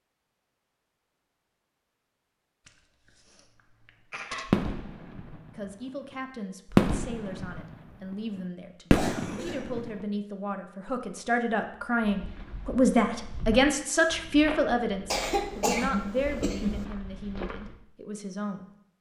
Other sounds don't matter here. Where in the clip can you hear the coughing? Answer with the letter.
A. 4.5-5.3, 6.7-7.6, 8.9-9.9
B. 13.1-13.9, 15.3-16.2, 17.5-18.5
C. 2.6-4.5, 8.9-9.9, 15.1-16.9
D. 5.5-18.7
C.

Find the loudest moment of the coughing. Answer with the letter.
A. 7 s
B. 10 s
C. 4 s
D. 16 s
D.